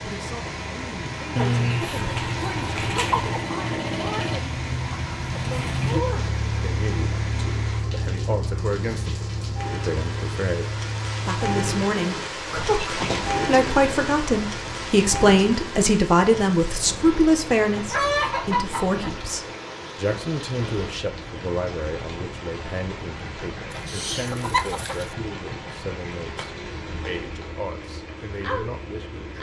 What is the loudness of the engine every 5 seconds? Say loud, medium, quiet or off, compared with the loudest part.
loud, loud, medium, medium, medium, medium.